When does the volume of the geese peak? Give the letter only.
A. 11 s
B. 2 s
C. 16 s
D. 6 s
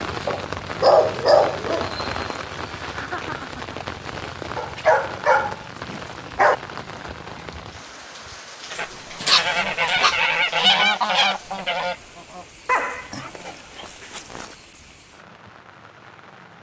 A.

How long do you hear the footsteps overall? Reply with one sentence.
You can't hear the footsteps here.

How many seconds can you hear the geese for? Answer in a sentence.
The geese can be heard for 4 seconds in total.